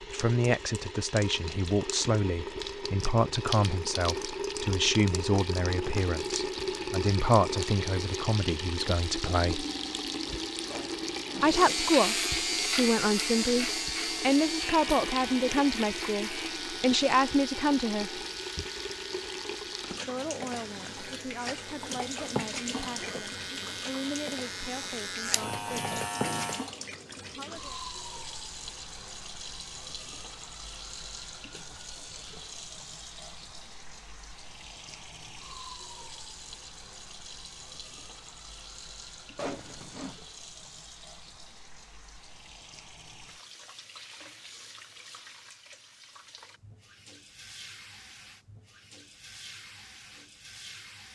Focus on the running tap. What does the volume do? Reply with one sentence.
The volume of the running tap goes down.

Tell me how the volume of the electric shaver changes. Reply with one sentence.
The loudness of the electric shaver goes down, then up.